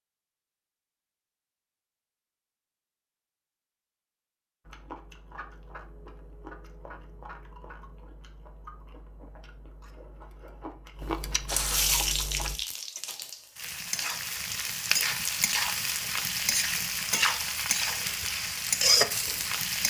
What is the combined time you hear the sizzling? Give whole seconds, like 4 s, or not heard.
8 s.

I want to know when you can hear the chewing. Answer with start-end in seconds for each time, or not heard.
4.7-12.6.